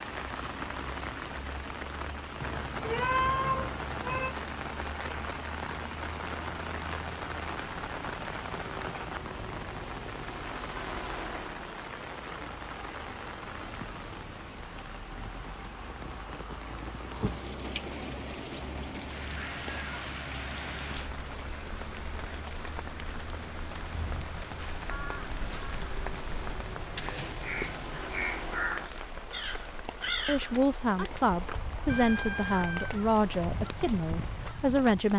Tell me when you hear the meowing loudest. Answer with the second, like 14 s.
3 s.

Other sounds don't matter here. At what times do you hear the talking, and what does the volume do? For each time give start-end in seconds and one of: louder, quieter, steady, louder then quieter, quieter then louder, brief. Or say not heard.
30.2-35.1 steady.